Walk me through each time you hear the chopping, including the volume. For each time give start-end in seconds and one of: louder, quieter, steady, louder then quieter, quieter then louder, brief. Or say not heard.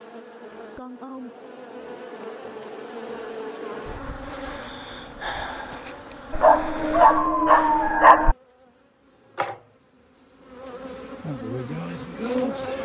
not heard.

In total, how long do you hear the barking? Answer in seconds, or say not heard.
2 s.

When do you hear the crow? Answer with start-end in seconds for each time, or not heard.
not heard.